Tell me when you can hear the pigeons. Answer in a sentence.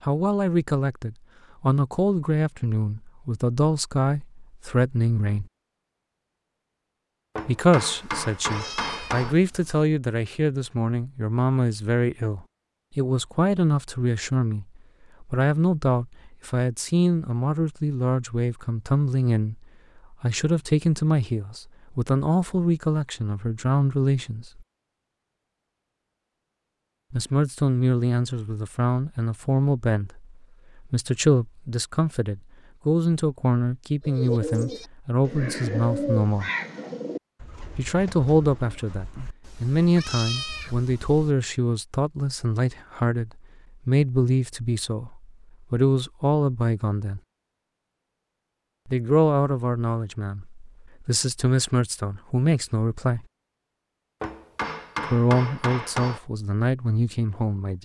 You can hear the pigeons from 34.0 to 39.4 s.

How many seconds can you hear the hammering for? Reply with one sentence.
You can hear the hammering for 4 seconds altogether.